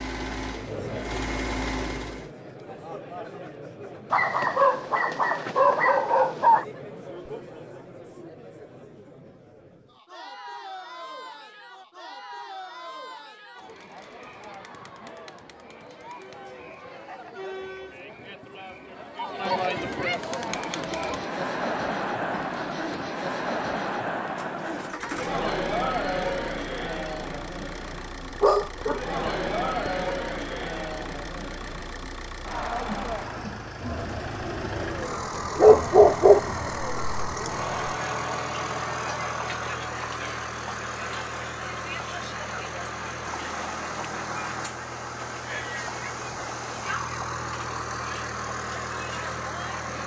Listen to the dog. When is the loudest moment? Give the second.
36 s.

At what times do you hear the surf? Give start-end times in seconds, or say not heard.
not heard.